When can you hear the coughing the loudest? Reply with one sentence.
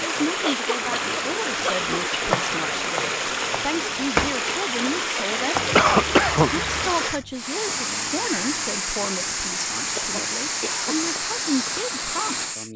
The volume of the coughing peaks at 6 seconds.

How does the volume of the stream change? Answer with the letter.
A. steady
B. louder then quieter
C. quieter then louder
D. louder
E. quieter
A.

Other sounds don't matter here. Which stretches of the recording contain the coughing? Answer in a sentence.
You can hear the coughing from 0.4 to 2.4 s, from 5.8 to 6.5 s and from 9.9 to 11.0 s.